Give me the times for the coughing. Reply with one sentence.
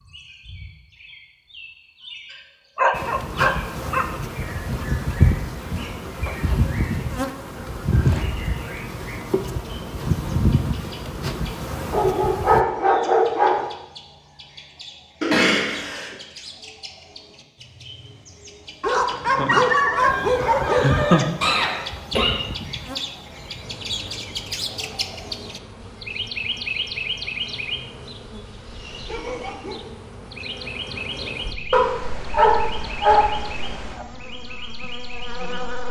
The coughing can be heard from 15.2 to 16.1 s and from 21.4 to 22.4 s.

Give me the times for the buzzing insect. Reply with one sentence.
You can hear the buzzing insect from 2.9 to 12.7 s and from 19.9 to 35.8 s.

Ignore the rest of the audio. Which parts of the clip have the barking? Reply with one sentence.
You can hear the barking from 2.8 to 4.0 s, from 11.9 to 13.7 s, from 18.8 to 21.3 s and from 31.7 to 34.0 s.